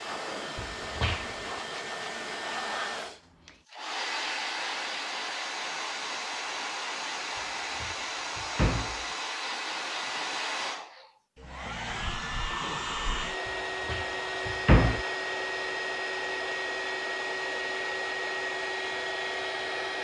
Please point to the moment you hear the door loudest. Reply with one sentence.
The volume of the door peaks at 15 seconds.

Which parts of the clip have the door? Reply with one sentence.
The door can be heard from 0.6 to 1.5 s, from 7.8 to 9.1 s and from 13.8 to 15.1 s.